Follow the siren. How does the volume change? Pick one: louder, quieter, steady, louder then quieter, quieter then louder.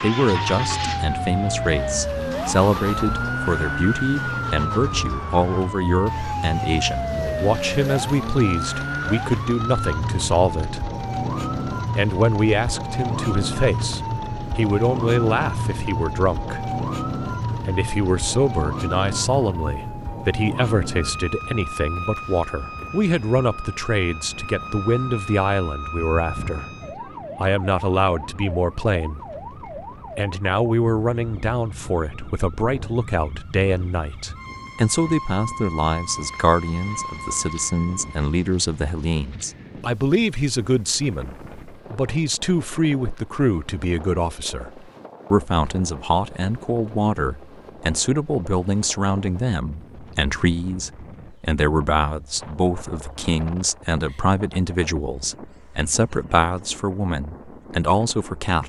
quieter.